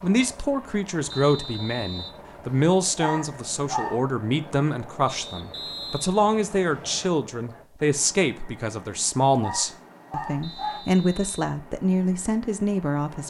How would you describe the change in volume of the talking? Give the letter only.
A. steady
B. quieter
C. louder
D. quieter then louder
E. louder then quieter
A.